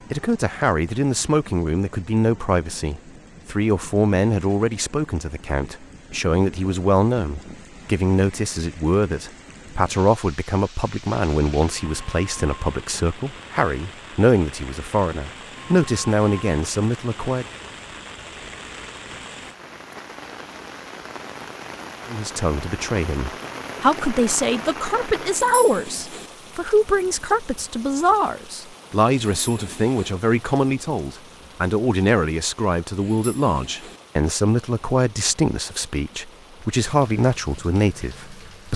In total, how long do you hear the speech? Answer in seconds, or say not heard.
34 s.